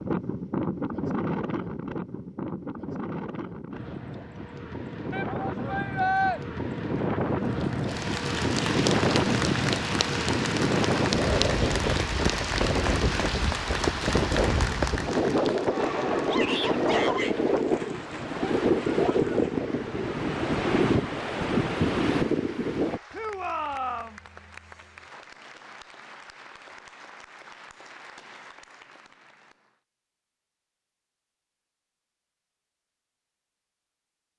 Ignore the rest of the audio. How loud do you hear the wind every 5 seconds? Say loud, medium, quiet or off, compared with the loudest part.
medium, loud, loud, loud, loud, off, off.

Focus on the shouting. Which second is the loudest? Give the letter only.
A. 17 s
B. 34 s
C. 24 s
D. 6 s
D.